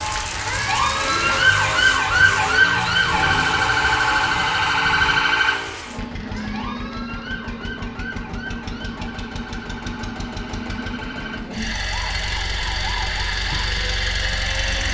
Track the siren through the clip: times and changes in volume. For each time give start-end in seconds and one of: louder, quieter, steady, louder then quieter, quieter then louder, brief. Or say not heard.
0.0-14.8 quieter.